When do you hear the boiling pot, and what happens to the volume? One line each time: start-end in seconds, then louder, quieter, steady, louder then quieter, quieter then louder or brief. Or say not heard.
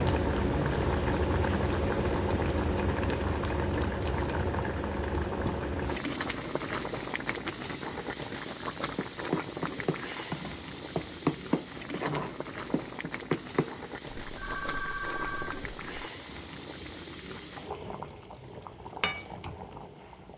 0.0-20.3 quieter.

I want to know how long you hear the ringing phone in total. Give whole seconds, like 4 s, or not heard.
2 s.